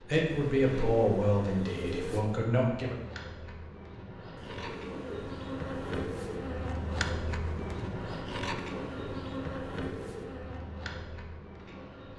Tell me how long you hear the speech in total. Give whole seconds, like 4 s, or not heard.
3 s.